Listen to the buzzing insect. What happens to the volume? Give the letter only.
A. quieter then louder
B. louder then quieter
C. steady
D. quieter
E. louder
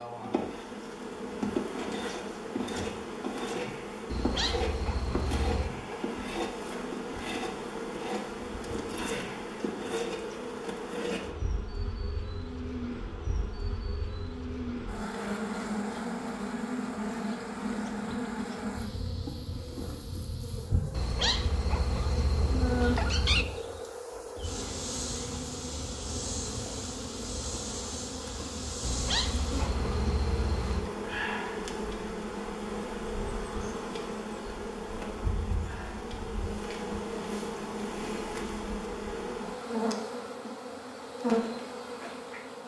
C.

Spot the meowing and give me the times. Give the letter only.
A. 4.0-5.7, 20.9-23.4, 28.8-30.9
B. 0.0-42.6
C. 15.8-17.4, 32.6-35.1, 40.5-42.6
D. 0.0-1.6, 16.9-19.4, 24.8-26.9
A.